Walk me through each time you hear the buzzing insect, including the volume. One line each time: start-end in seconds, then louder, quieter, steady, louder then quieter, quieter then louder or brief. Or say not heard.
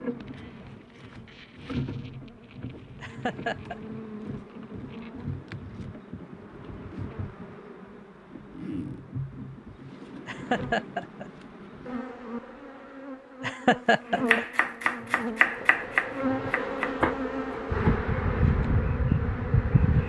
0.0-20.0 louder.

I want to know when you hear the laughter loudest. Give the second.
14 s.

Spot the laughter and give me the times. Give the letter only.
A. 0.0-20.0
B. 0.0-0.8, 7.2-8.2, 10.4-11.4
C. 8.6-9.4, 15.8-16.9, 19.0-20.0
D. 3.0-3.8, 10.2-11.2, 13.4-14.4
D.